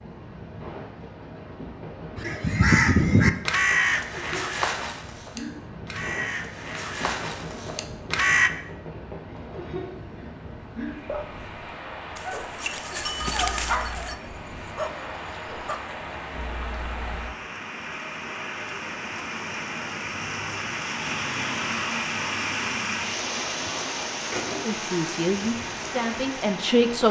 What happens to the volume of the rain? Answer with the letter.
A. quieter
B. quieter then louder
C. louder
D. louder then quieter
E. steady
C.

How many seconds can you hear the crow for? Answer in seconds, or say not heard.
6 s.